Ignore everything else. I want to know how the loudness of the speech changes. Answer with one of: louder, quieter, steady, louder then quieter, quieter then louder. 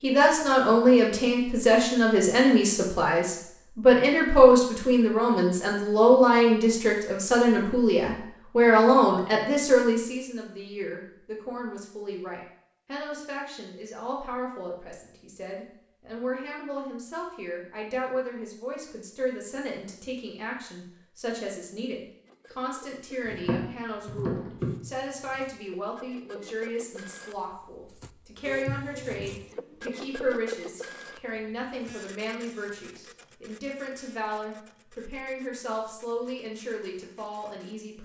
quieter.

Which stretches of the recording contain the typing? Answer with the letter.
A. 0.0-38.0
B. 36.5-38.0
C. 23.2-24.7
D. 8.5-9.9
C.